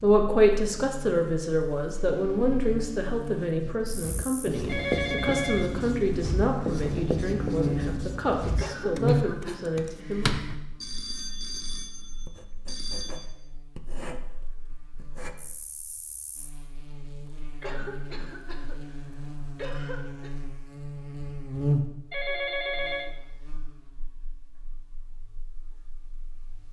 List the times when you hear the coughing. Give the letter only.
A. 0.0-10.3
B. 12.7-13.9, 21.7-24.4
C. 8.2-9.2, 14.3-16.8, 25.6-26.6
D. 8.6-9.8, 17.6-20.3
D.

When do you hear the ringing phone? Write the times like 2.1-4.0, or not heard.
4.7-5.8, 10.8-13.2, 22.1-23.1.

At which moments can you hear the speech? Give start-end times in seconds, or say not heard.
0.0-10.3.